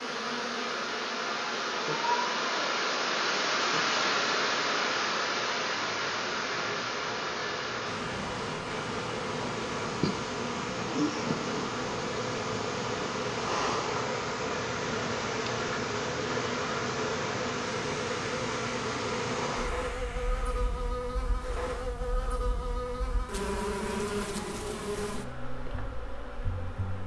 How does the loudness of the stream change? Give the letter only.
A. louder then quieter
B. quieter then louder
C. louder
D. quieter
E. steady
D.